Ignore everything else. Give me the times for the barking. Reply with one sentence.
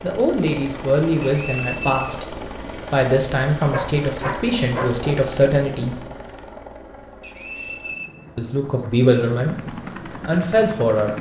You can hear the barking from 3.7 to 5.2 s.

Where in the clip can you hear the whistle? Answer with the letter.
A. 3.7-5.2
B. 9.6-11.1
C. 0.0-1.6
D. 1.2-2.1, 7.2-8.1
D.